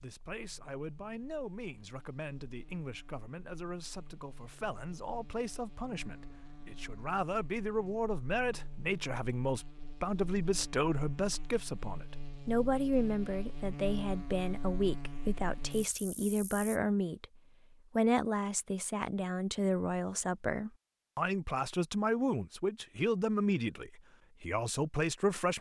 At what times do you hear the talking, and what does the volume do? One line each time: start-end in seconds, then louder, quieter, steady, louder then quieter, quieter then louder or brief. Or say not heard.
0.0-25.5 louder.